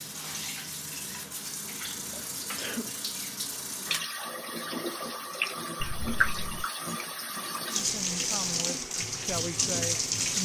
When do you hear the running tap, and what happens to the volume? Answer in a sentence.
You can hear the running tap from 0.0 to 10.4 s, getting louder.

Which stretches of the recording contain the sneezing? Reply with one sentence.
You can hear the sneezing from 2.5 to 3.0 s and from 5.8 to 6.7 s.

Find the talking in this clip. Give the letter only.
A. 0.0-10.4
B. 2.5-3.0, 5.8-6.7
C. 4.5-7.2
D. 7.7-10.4
D.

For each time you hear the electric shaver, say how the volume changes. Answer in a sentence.
You can't hear the electric shaver here.